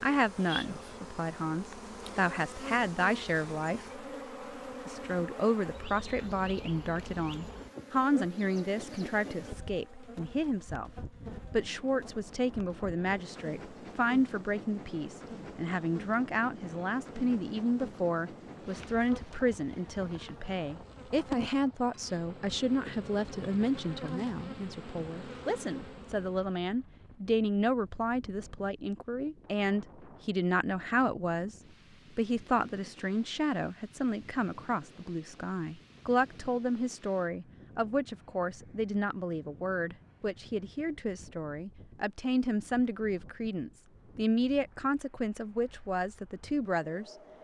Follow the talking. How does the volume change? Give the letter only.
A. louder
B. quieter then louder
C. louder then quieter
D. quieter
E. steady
E.